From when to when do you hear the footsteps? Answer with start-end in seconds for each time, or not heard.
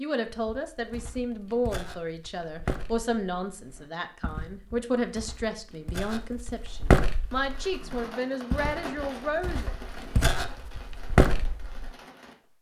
0.2-11.9.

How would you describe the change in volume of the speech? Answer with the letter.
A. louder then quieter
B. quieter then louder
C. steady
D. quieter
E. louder
C.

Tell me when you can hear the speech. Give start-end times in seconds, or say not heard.
0.0-9.8.